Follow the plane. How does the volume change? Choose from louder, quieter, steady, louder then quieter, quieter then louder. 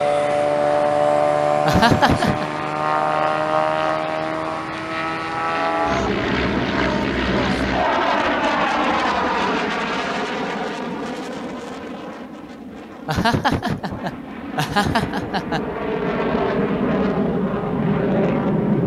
quieter then louder.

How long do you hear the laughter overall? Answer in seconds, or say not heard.
3 s.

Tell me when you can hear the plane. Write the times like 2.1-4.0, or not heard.
0.0-18.8.